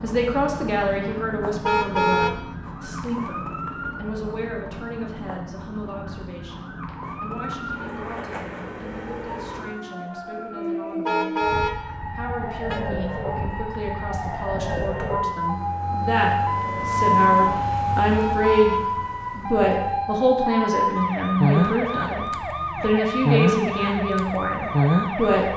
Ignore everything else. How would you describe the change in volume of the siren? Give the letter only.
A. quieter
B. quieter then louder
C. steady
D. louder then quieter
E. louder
E.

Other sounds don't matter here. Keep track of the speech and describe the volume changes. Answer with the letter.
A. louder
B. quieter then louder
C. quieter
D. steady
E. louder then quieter
B.